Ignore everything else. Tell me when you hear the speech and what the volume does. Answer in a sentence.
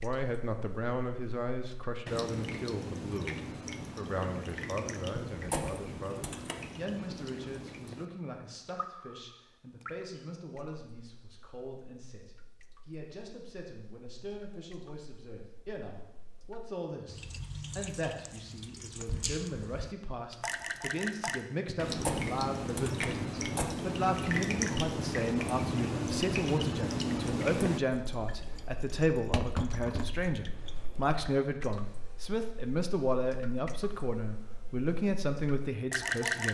You can hear the speech from 0.0 to 36.4 s, getting quieter then louder.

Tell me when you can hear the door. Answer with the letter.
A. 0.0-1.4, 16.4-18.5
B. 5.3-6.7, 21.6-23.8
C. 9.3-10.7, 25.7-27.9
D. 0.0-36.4
B.